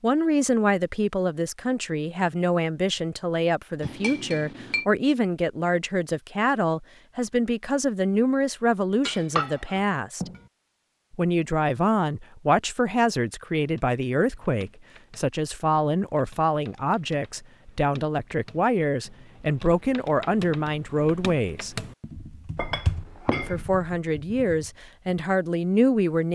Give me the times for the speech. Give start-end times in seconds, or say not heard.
0.0-10.3, 11.1-21.8, 23.4-26.3.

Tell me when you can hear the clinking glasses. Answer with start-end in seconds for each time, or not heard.
3.8-4.8, 9.1-10.4, 22.6-23.6.